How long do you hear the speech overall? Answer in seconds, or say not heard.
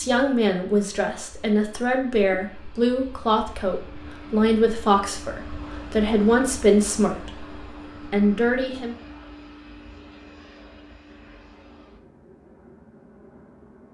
9 s.